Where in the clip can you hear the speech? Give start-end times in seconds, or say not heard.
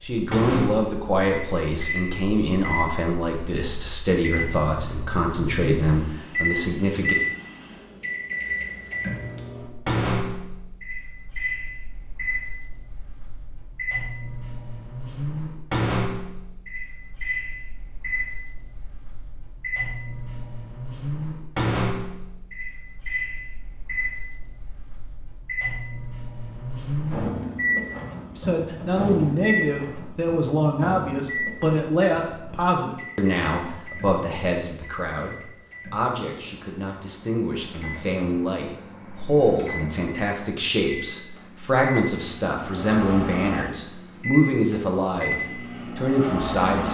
0.0-7.2, 28.4-46.9.